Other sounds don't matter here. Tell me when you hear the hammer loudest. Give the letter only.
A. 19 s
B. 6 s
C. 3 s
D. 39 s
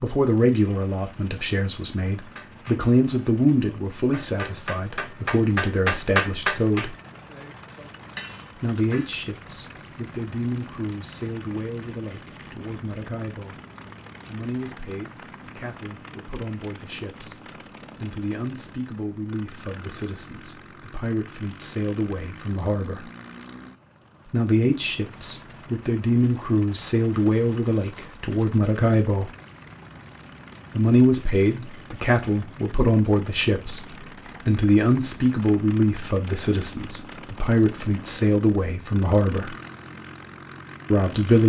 B.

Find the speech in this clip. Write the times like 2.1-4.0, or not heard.
0.0-7.0, 8.6-13.6, 14.2-23.1, 24.2-29.3, 30.8-39.5, 40.9-41.4.